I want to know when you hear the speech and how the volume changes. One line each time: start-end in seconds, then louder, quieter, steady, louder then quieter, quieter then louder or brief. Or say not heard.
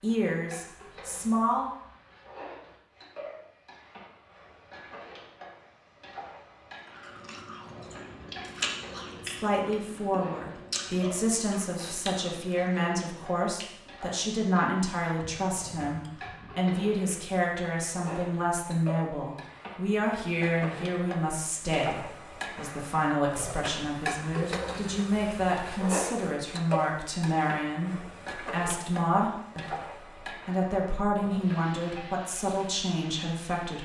0.0-1.7 brief
9.1-33.8 steady.